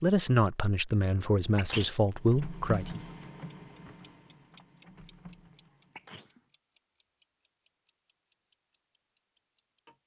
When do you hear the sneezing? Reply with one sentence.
You can hear the sneezing from 1.1 to 2.0 s and from 6.0 to 6.4 s.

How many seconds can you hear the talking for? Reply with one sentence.
The talking can be heard for 3 seconds in total.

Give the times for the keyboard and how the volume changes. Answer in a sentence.
You can't hear the keyboard here.